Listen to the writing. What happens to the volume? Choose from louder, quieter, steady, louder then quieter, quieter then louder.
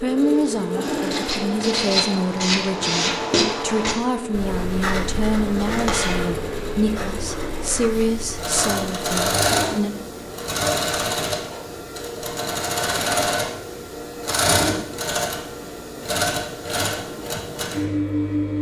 quieter.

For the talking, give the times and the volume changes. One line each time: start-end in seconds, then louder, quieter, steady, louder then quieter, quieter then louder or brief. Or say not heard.
0.0-10.0 steady.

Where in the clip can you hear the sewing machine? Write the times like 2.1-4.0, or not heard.
0.0-18.5.